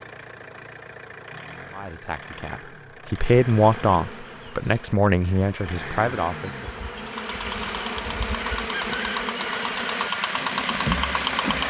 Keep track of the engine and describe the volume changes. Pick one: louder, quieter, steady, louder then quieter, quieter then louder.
louder.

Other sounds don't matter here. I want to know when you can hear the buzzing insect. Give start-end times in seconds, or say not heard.
3.4-11.6.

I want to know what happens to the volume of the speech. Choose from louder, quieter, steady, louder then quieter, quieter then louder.
louder then quieter.